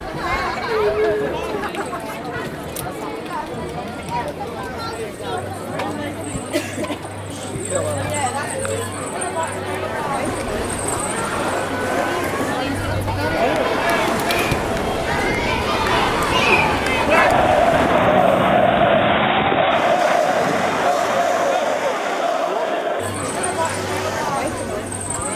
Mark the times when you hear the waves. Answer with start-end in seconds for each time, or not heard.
9.9-25.2.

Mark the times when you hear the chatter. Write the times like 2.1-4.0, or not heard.
0.0-25.3.